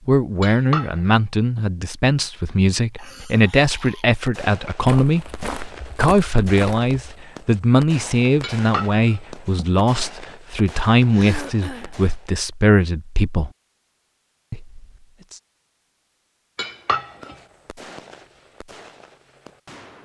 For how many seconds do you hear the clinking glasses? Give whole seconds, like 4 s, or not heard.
3 s.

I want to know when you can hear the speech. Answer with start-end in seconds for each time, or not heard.
0.1-5.2, 6.0-13.5, 14.5-15.3.